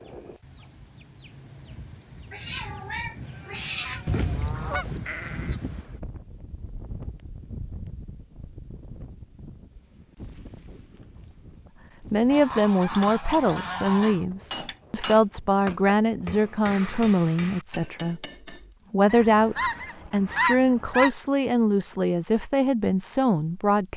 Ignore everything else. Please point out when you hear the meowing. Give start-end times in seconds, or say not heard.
2.3-4.0.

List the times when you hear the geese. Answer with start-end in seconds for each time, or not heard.
4.0-5.0, 12.2-14.2, 19.1-21.1.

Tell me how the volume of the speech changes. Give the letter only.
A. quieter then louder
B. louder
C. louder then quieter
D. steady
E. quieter
D.